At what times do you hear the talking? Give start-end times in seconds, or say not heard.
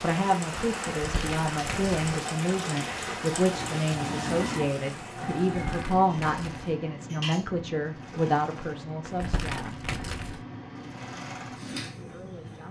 0.0-9.8, 12.1-12.6.